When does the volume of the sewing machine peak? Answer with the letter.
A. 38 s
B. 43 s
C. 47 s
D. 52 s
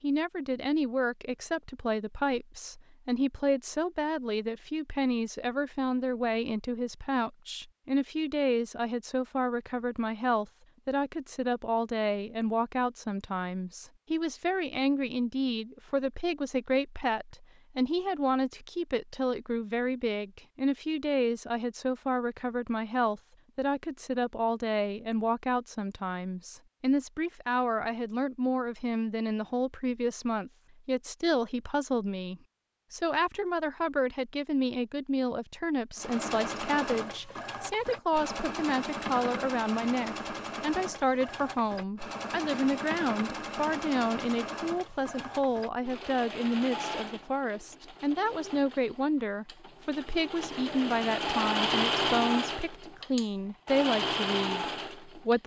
D.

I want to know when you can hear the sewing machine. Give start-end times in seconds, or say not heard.
36.0-55.4.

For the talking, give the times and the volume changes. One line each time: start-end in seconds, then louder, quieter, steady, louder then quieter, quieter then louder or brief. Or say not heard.
0.0-55.4 steady.